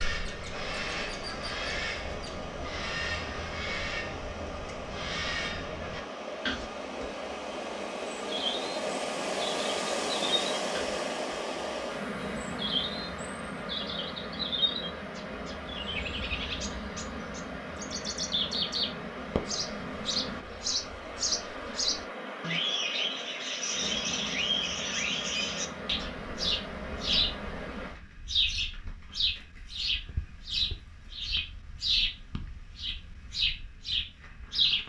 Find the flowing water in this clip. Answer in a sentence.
You can hear the flowing water from 0.0 to 27.9 s.